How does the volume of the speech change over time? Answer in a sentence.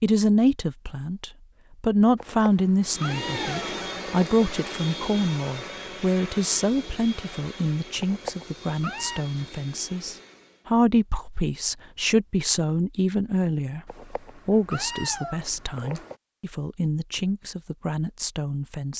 The volume of the speech goes down.